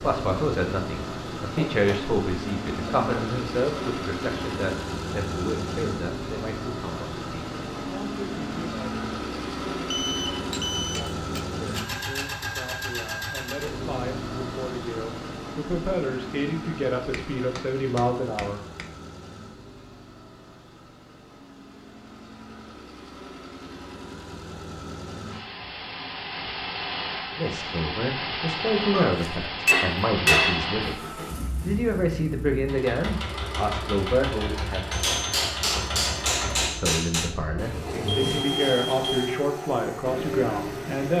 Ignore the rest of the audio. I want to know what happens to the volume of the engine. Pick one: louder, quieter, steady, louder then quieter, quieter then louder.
quieter then louder.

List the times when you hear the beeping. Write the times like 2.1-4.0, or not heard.
9.9-11.0, 37.5-39.4.